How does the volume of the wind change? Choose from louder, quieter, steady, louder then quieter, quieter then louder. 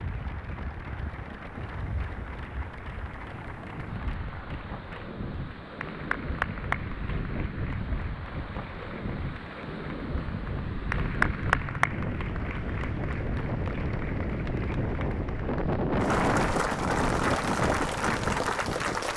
louder.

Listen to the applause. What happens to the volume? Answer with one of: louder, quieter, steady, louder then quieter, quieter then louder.
louder.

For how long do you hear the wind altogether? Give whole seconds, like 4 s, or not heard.
19 s.